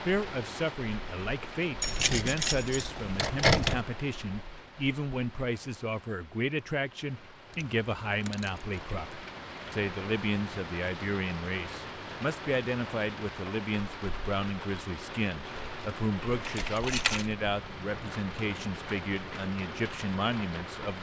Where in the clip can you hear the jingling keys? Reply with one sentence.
The jingling keys can be heard from 1.8 to 3.8 s, from 7.5 to 8.7 s and from 16.4 to 17.2 s.